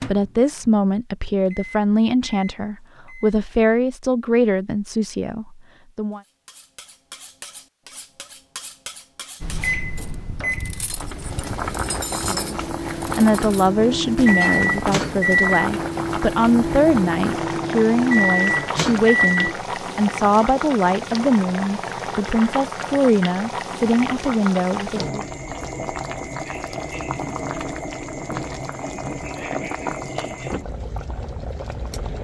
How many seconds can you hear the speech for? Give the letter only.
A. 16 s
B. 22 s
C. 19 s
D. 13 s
C.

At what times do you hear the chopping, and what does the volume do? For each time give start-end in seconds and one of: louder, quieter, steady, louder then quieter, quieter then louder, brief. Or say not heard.
not heard.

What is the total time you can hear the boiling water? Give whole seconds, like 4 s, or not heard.
21 s.